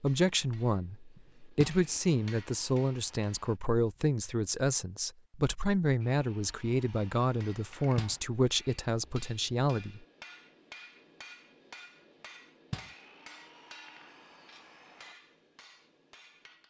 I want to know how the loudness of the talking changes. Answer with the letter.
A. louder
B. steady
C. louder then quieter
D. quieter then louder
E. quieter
B.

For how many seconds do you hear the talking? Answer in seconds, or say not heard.
10 s.